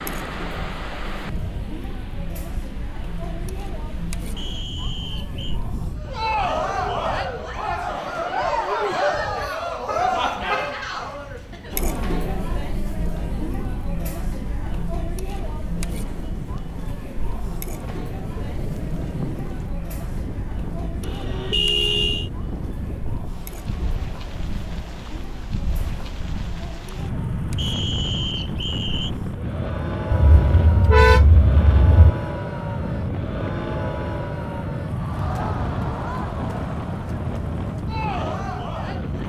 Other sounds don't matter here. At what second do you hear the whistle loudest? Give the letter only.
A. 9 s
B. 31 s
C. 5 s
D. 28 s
D.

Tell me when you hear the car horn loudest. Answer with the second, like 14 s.
31 s.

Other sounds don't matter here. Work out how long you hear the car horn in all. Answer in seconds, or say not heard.
5 s.